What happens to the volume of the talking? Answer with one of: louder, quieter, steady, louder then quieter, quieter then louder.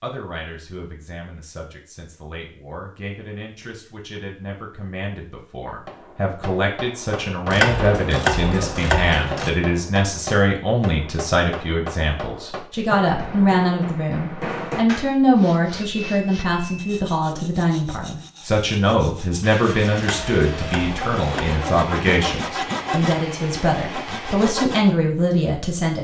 louder.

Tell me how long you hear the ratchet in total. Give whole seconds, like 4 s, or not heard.
4 s.